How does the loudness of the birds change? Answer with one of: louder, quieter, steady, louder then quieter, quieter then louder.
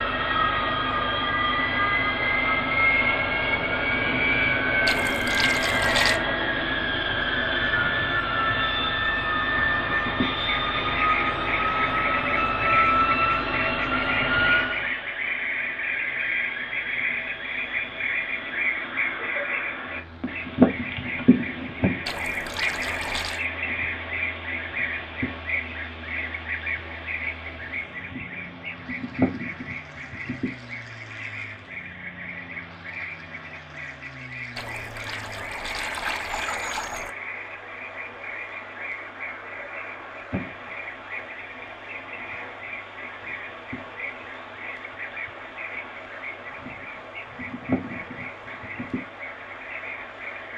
quieter.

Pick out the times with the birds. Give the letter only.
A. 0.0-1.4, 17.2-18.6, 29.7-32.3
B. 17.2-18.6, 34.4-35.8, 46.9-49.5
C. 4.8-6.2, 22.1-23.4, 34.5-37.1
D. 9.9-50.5
D.